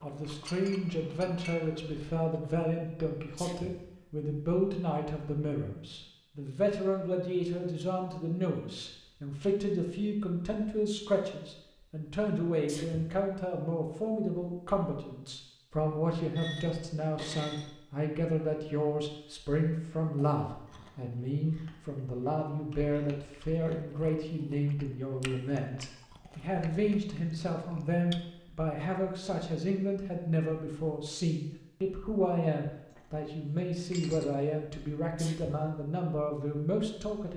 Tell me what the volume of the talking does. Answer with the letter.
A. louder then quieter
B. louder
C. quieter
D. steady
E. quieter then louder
D.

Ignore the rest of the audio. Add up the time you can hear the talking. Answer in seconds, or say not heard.
37 s.